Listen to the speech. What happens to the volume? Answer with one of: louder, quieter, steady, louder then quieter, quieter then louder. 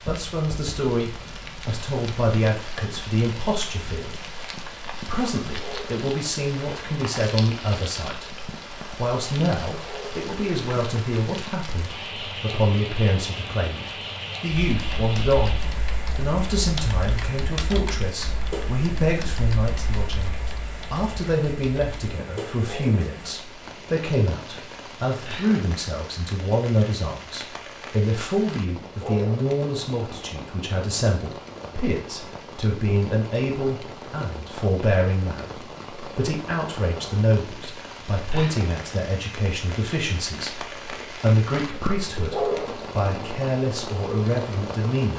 steady.